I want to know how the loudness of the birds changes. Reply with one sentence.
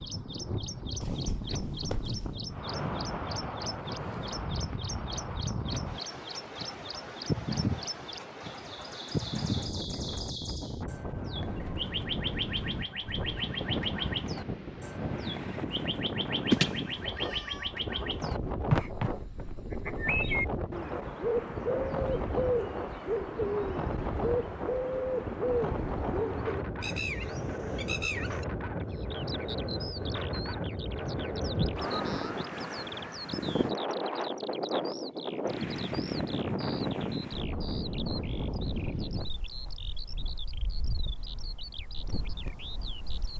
The volume of the birds goes up, then down.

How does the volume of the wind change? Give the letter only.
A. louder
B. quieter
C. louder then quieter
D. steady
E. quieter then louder
D.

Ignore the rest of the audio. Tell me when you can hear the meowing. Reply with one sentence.
The meowing can be heard from 1.0 to 2.4 s, from 16.5 to 17.6 s and from 31.4 to 32.4 s.